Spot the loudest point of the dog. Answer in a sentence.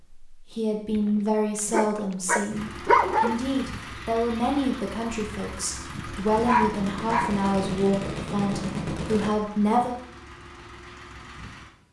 The volume of the dog peaks at 3 seconds.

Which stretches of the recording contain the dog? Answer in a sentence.
The dog can be heard from 0.9 to 3.4 s and from 6.0 to 7.4 s.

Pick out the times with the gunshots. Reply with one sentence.
You can hear the gunshots from 6.3 to 9.3 s.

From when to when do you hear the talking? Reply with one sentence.
The talking can be heard from 0.3 to 9.9 s.